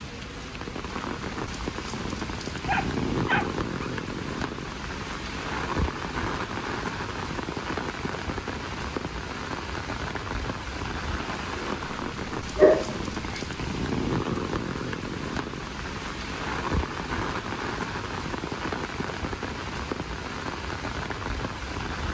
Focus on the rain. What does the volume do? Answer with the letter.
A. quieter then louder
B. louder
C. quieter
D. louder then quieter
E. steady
E.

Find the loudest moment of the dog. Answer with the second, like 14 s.
13 s.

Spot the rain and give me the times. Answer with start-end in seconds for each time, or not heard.
0.0-22.0.